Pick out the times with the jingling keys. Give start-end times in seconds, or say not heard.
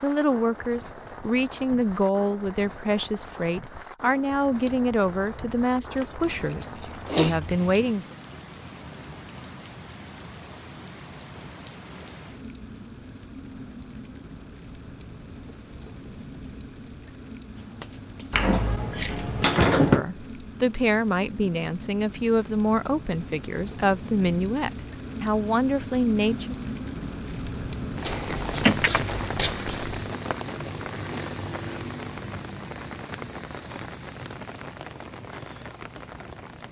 6.2-7.9, 18.3-20.1, 28.6-29.6.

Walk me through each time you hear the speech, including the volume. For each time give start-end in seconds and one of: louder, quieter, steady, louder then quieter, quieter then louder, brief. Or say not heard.
0.0-8.2 steady
19.8-26.6 steady.